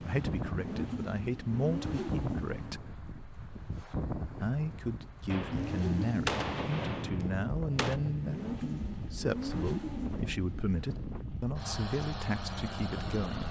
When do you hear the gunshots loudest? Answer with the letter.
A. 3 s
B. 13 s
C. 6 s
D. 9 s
C.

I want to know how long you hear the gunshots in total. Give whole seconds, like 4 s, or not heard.
3 s.